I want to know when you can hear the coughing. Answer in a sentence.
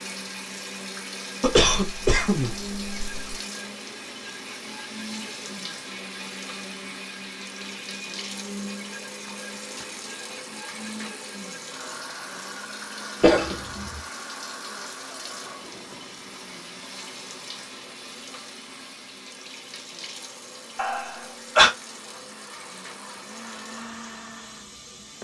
You can hear the coughing from 1.4 to 3.4 s, from 13.2 to 13.8 s and from 20.8 to 21.7 s.